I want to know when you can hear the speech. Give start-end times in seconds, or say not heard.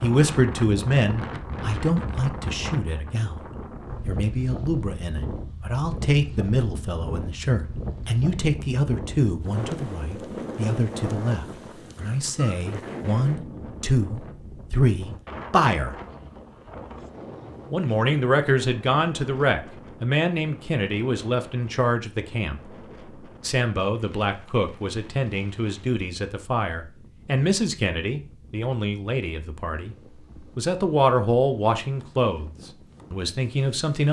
0.0-3.5, 4.0-15.9, 17.7-22.8, 23.4-29.9, 30.6-34.0.